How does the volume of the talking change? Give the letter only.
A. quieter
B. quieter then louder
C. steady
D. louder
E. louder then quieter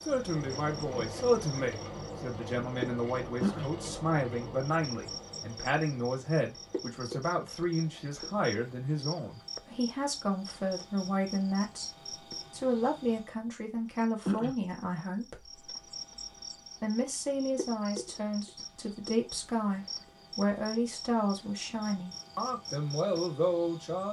C.